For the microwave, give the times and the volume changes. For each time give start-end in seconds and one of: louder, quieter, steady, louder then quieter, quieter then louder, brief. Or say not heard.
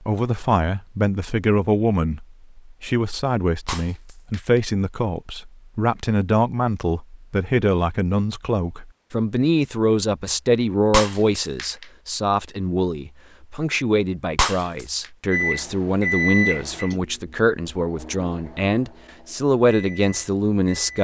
15.3-20.9 quieter then louder.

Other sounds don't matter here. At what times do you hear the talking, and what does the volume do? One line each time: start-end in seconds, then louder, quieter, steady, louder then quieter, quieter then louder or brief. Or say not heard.
0.0-20.9 steady.